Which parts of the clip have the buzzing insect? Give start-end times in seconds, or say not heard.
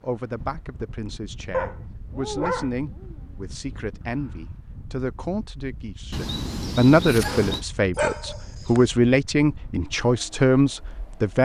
not heard.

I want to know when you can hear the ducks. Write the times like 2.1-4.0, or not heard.
6.1-7.7.